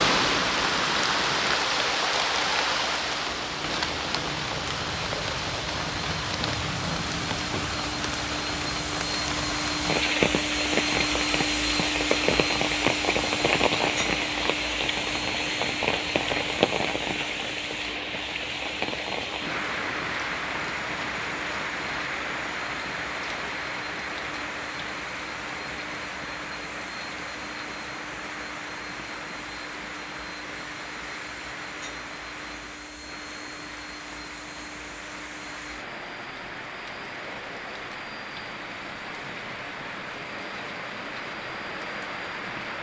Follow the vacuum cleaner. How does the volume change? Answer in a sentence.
The loudness of the vacuum cleaner goes down.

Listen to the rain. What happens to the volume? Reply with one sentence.
The loudness of the rain goes down.